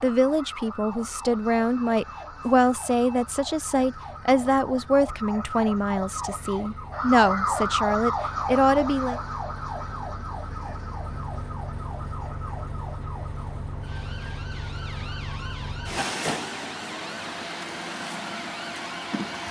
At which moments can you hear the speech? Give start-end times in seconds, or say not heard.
0.0-9.2.